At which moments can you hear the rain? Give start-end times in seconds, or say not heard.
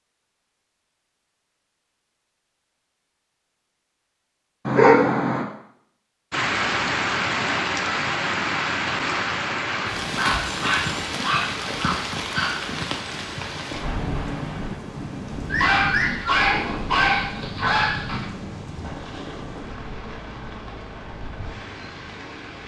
6.3-22.6.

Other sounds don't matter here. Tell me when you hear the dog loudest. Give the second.
5 s.